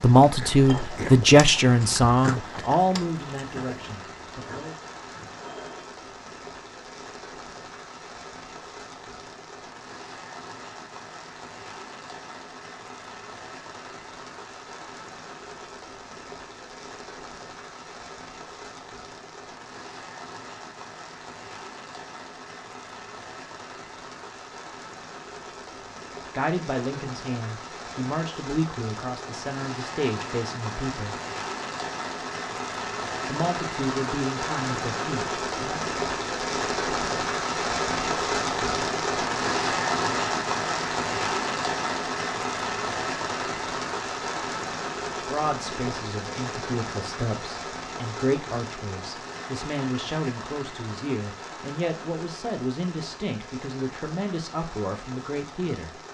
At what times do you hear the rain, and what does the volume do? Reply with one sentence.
The rain can be heard from 0.0 to 56.0 s, getting louder then quieter.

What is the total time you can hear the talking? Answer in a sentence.
The talking can be heard for 23 seconds in total.